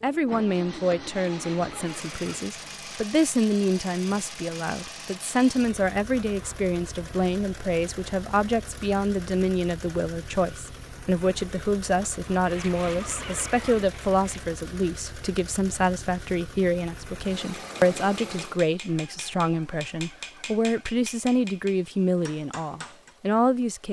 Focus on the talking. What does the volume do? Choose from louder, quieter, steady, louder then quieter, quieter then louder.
steady.